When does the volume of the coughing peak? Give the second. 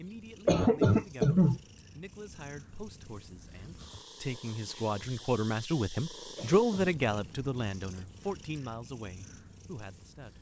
1 s.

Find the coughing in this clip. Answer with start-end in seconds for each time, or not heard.
0.5-1.6, 6.3-7.0.